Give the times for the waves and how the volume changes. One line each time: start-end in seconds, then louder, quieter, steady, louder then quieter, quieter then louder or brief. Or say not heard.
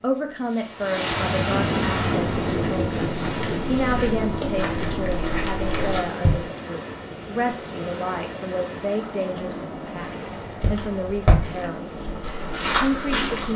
0.0-13.5 quieter.